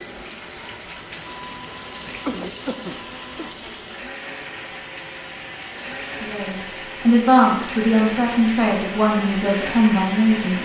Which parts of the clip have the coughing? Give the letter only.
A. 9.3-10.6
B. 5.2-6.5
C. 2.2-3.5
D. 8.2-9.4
C.